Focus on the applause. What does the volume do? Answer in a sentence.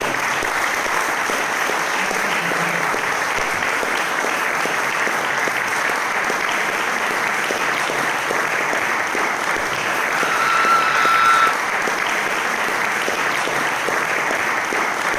The volume of the applause stays about the same.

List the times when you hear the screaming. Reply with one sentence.
The screaming can be heard from 10.1 to 11.6 s.